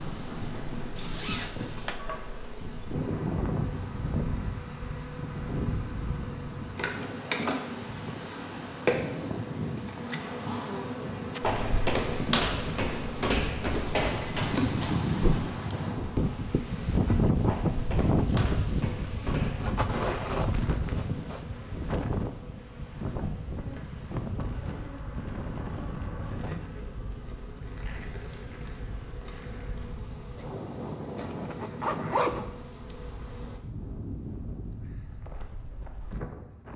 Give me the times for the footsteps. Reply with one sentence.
You can hear the footsteps from 11.3 to 19.7 s.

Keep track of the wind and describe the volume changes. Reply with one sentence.
The volume of the wind goes up, then down.